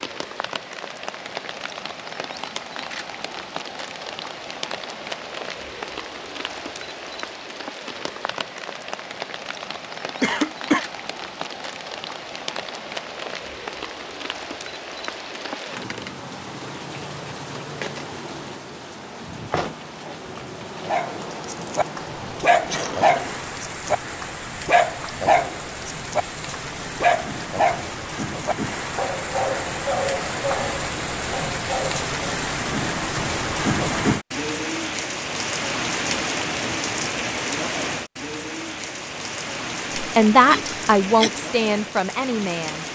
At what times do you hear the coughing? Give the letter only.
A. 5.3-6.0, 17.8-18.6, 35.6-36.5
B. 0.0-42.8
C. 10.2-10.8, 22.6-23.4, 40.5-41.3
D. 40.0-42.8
C.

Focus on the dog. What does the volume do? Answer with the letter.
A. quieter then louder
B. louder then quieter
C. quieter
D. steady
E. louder
C.